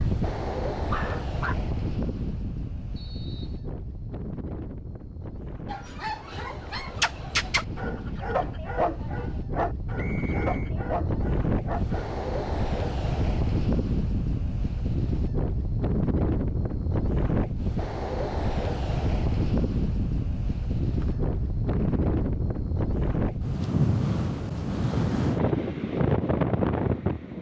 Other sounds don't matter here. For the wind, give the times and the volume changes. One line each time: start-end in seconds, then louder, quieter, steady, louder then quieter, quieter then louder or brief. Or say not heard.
0.0-27.3 louder.